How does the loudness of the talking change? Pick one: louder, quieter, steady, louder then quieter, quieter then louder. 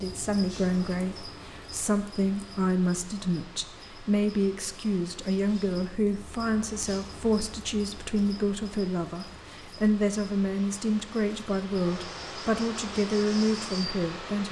steady.